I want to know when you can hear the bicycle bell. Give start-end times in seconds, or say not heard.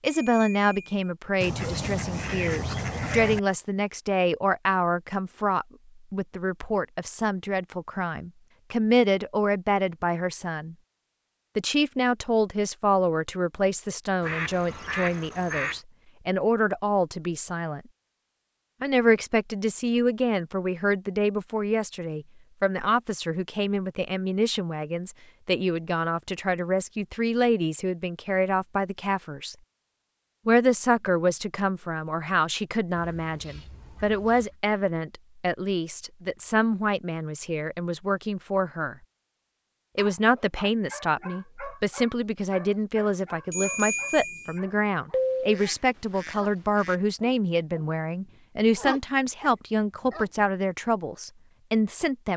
0.1-1.1, 43.5-44.6.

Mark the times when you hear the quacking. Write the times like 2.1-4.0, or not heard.
1.4-3.4, 14.2-15.8, 33.0-34.5, 45.1-47.0.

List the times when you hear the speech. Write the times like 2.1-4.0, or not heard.
0.0-10.8, 11.6-17.8, 18.8-29.6, 30.4-39.0, 40.0-52.3.